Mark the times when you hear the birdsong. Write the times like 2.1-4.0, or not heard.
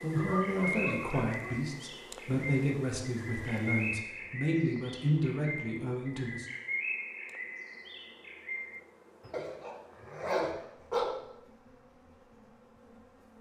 0.0-9.4.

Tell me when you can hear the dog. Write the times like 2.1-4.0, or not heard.
0.1-1.6, 9.3-11.1.